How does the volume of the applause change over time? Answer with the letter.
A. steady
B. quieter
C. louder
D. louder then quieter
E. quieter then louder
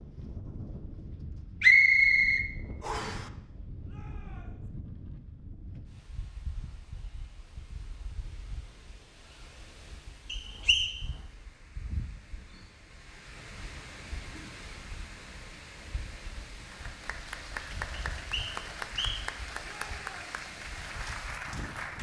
A.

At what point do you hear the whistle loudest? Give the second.
2 s.